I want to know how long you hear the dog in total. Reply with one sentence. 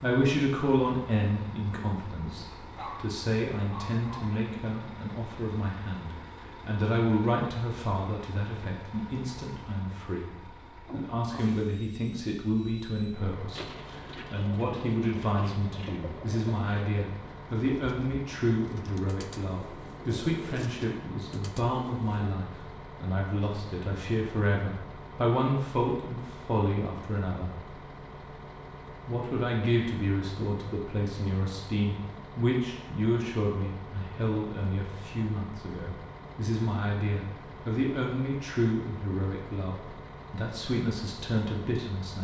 You can hear the dog for 2 seconds altogether.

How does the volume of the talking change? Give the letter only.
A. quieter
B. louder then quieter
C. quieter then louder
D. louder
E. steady
E.